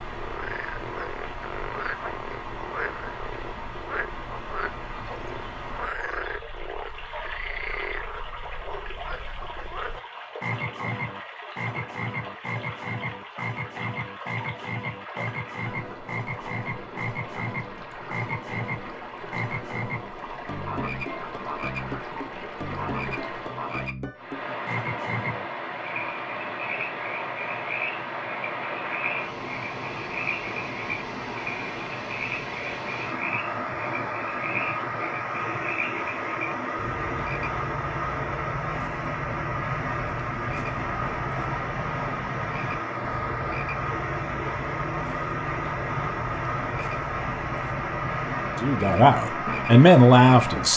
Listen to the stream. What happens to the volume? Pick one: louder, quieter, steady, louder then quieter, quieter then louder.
louder.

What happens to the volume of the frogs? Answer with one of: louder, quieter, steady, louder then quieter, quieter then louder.
steady.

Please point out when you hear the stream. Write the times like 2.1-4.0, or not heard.
0.0-50.7.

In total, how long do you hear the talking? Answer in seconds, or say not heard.
2 s.